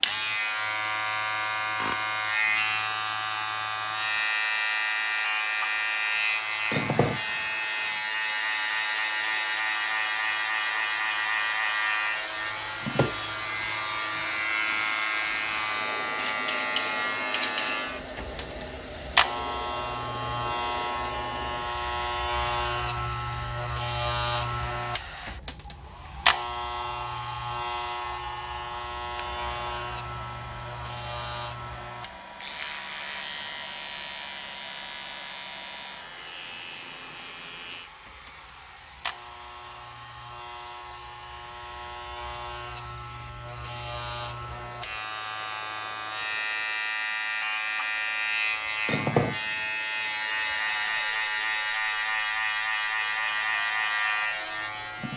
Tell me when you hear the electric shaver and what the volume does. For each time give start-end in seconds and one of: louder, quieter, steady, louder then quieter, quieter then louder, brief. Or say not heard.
0.0-55.1 quieter then louder.